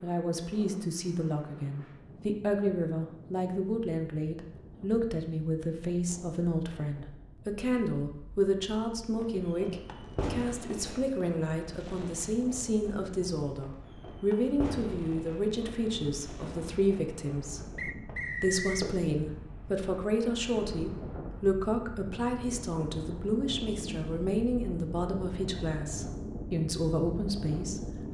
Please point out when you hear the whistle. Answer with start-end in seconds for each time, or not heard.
17.8-18.9.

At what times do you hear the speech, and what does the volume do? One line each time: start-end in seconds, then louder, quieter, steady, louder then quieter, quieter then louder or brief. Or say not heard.
0.0-17.7 steady
18.4-27.9 steady.